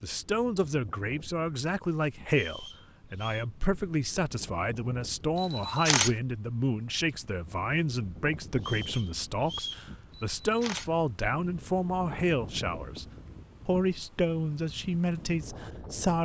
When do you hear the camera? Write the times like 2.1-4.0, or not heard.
5.3-6.1, 10.1-10.9.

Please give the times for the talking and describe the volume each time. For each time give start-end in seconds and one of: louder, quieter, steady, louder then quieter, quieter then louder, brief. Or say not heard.
0.0-13.1 steady
13.7-16.1 brief.